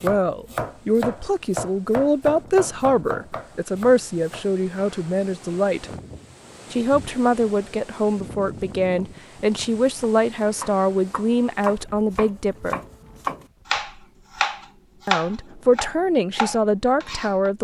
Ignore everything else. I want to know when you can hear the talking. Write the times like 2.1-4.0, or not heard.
0.0-5.8, 6.7-12.8, 15.1-17.5.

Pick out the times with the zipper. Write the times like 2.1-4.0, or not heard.
not heard.